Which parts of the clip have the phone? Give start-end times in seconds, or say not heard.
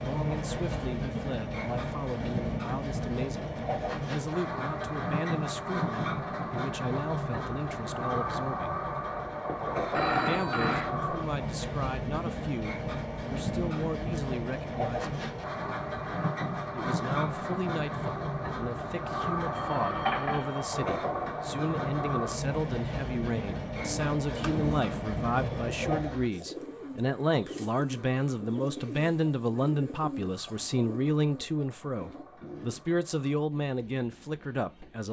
9.4-10.9, 19.5-20.6.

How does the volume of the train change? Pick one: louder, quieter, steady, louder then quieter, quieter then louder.
quieter.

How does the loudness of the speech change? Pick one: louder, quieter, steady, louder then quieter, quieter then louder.
louder.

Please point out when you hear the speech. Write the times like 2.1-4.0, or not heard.
0.0-8.8, 10.1-15.2, 16.7-35.0.